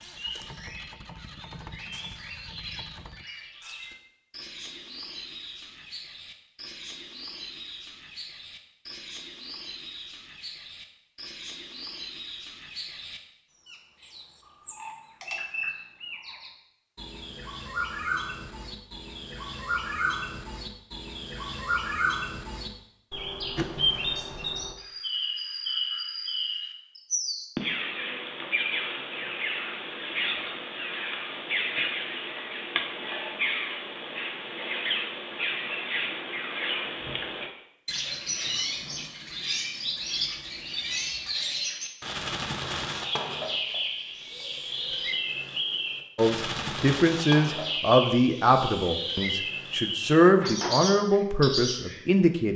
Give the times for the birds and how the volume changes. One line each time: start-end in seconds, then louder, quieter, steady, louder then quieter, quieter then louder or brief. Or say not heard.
0.0-52.2 louder.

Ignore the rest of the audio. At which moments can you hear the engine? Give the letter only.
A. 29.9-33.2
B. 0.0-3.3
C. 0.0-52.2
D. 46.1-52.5
B.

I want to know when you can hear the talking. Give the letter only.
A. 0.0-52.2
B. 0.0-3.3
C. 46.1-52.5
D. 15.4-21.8
C.